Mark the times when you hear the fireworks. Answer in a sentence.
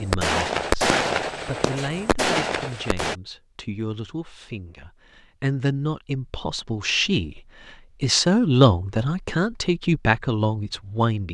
The fireworks can be heard from 0.0 to 3.1 s.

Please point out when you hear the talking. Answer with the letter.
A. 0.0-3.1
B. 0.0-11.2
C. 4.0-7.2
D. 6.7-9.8
B.